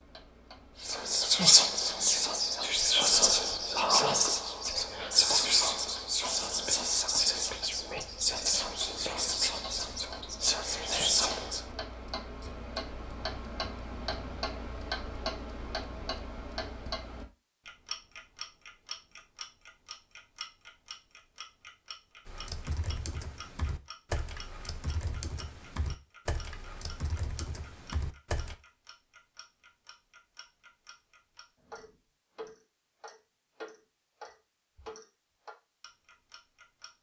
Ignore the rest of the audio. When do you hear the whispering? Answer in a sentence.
You can hear the whispering from 0.8 to 11.6 s.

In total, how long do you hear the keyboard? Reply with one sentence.
The keyboard can be heard for 6 seconds in total.